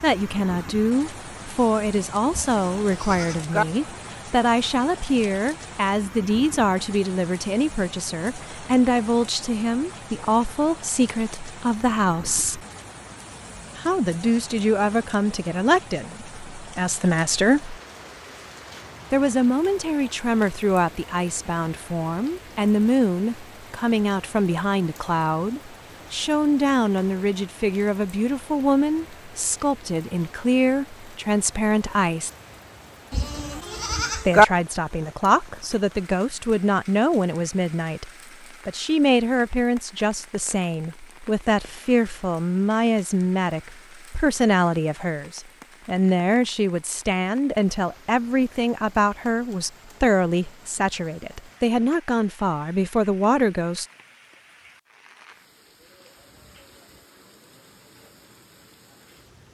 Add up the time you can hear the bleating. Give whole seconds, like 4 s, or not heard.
3 s.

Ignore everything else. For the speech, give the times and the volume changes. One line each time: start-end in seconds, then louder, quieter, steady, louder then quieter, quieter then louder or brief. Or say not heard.
0.0-12.7 steady
13.8-17.8 quieter then louder
19.1-32.3 steady
34.1-53.9 steady.